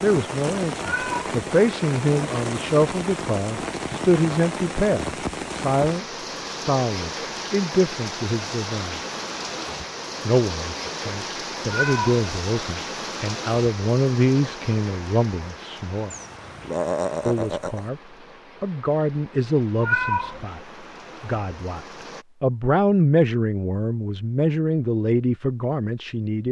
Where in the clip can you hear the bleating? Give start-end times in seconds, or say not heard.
16.1-17.9.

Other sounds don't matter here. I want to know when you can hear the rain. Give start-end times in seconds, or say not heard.
0.0-22.2.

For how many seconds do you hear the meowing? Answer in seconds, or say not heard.
2 s.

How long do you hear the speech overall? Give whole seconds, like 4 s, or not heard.
23 s.